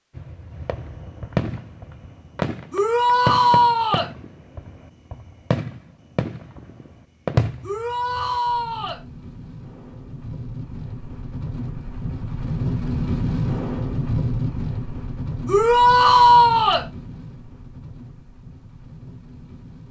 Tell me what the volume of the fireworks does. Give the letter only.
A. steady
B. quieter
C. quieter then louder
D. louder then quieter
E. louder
C.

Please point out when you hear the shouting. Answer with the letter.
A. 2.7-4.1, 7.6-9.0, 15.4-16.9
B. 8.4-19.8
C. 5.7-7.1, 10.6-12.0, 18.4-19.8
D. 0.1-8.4
A.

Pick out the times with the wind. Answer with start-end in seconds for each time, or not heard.
8.4-19.8.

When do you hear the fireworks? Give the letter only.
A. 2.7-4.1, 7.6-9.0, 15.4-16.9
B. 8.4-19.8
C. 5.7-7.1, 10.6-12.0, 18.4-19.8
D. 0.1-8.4
D.